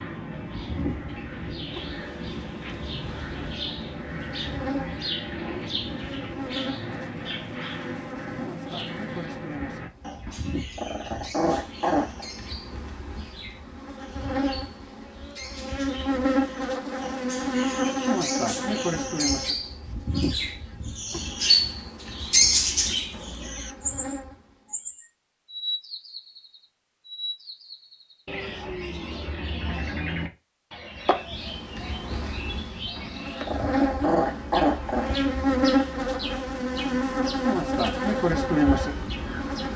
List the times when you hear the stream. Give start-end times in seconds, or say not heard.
not heard.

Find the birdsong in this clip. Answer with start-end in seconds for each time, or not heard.
0.0-39.7.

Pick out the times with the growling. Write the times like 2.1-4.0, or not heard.
10.2-12.2, 33.0-35.1.